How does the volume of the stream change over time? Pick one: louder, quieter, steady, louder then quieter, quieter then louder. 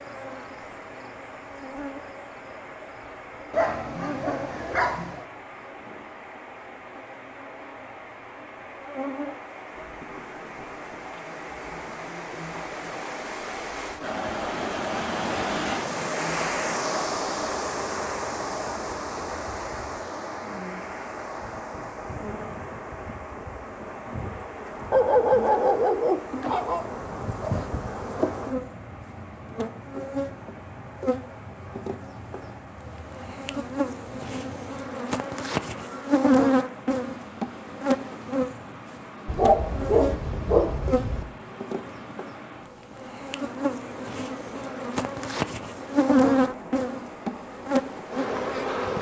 louder then quieter.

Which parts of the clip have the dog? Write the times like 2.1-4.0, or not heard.
3.5-5.2, 24.9-26.9, 39.2-41.2.